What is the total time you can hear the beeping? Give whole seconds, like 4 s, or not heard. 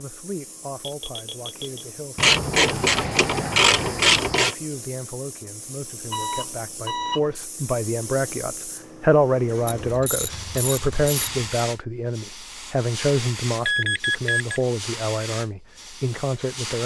3 s.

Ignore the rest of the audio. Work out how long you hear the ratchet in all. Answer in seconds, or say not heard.
4 s.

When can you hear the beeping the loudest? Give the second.
14 s.